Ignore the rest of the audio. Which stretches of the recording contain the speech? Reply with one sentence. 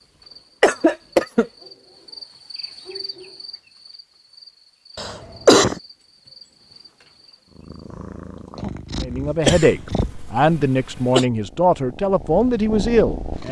The speech can be heard from 9.0 to 13.4 s.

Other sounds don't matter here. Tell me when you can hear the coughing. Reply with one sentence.
The coughing can be heard from 0.6 to 1.4 s, from 5.0 to 5.8 s and from 9.4 to 11.2 s.